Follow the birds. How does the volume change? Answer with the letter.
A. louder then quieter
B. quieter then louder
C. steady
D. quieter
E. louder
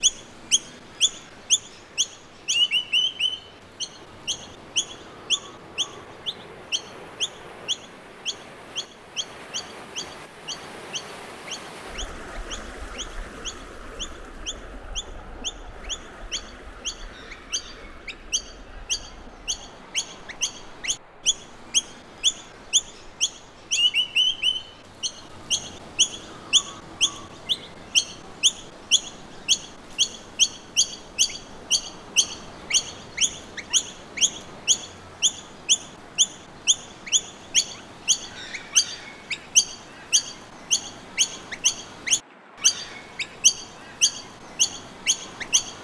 B.